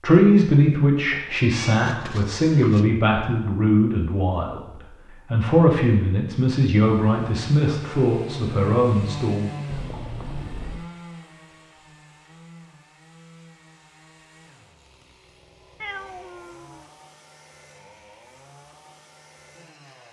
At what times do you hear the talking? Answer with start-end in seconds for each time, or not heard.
0.0-9.6.